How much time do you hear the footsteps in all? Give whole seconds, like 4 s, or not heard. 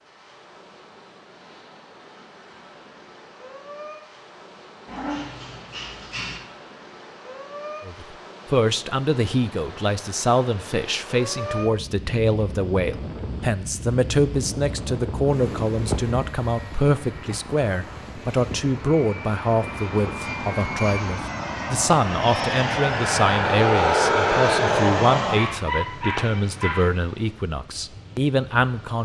not heard.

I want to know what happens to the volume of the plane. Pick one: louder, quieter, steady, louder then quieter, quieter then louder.
louder.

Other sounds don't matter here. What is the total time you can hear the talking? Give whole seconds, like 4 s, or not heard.
21 s.